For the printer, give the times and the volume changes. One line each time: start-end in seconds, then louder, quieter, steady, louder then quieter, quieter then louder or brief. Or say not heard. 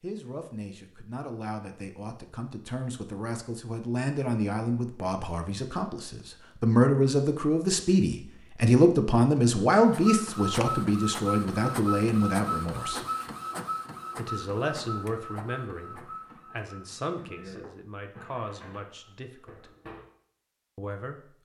9.8-20.1 quieter.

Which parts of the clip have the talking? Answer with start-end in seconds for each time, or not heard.
0.0-13.1, 14.2-19.7, 20.8-21.4.